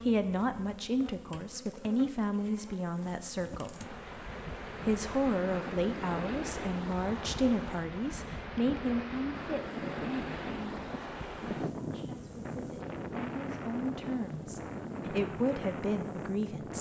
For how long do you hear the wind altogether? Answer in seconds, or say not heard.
13 s.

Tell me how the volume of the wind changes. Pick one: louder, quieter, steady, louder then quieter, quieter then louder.
steady.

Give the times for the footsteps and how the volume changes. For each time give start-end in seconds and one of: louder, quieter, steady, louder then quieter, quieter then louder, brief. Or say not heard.
not heard.